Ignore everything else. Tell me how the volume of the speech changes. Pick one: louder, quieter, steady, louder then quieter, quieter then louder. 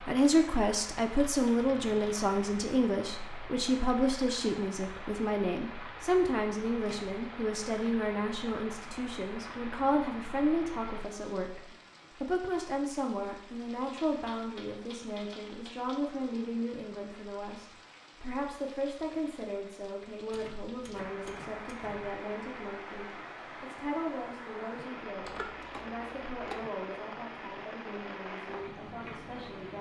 quieter.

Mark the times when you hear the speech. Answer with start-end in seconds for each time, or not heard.
0.1-29.7.